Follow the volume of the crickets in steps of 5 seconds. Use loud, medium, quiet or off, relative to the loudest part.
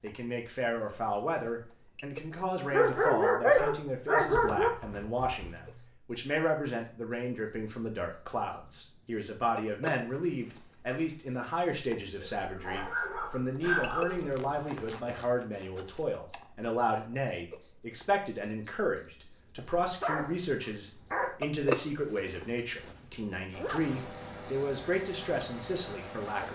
quiet, medium, medium, loud, loud, loud.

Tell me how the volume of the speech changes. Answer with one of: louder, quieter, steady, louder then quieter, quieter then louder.
steady.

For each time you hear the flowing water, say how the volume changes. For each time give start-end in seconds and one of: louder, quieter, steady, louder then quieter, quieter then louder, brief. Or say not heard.
not heard.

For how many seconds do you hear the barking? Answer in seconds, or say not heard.
6 s.